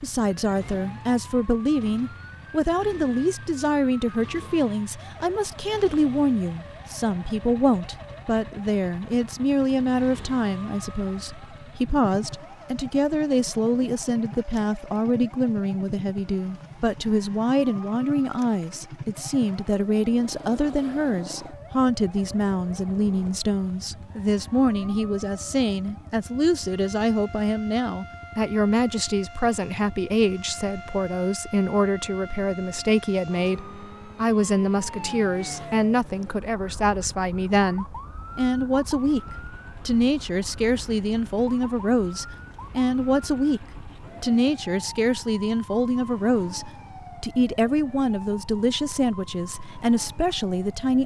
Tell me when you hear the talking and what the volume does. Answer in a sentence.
The talking can be heard from 0.0 to 51.0 s, at a steady volume.